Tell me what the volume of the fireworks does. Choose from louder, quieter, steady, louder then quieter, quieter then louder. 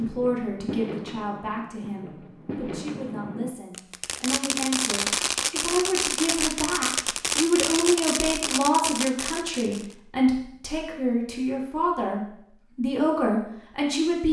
louder.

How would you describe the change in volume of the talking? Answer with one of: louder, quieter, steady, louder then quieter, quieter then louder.
louder.